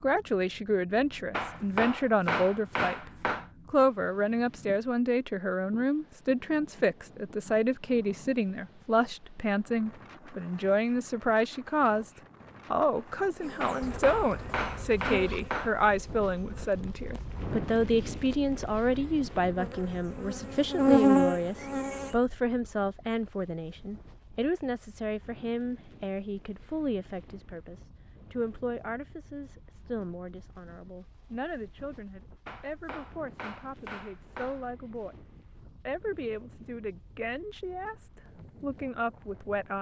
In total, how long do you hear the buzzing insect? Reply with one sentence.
You can hear the buzzing insect for 9 seconds altogether.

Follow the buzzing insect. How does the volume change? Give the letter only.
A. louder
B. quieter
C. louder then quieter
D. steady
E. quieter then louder
E.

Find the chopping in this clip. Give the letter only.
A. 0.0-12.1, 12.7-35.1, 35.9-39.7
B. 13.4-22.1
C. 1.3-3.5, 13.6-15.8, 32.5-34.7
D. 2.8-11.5
C.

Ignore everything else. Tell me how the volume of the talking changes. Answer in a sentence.
The loudness of the talking goes down.